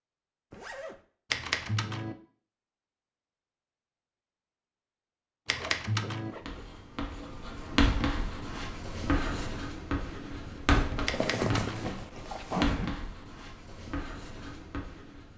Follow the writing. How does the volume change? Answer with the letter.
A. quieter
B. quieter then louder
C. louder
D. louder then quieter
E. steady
A.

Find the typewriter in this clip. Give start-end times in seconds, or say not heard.
1.3-2.1, 5.5-6.3, 11.1-11.9.